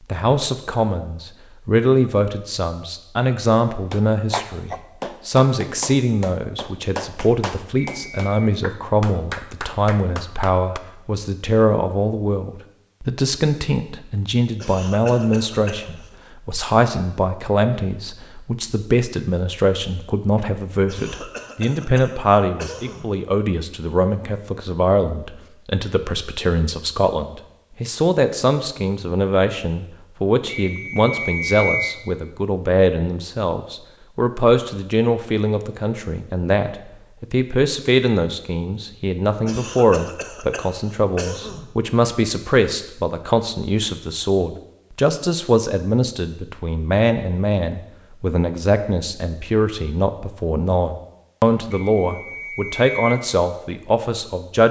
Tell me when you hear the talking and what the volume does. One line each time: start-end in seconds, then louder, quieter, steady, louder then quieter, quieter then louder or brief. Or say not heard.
0.1-54.6 steady.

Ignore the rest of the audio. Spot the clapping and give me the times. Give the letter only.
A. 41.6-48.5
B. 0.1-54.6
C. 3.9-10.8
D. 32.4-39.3
C.